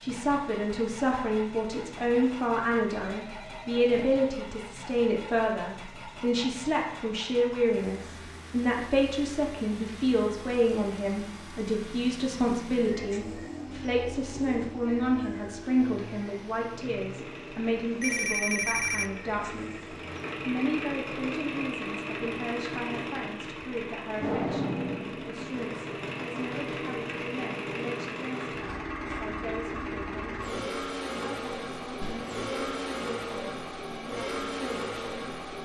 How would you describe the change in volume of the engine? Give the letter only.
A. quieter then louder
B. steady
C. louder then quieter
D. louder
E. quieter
D.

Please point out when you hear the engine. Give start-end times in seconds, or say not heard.
0.0-35.5.